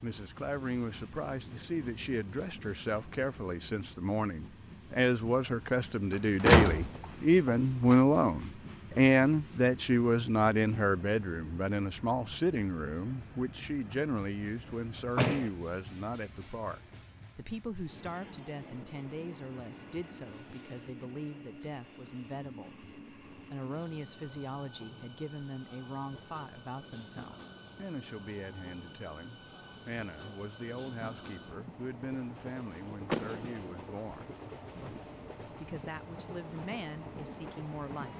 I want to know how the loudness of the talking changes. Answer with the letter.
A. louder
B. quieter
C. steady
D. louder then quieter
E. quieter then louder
B.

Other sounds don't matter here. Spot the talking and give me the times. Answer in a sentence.
You can hear the talking from 0.0 to 38.1 s.